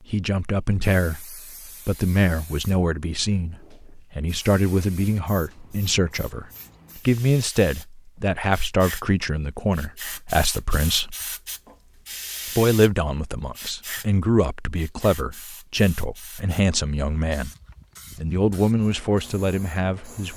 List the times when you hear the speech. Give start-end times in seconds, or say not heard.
0.1-11.2, 12.6-17.5, 18.1-20.3.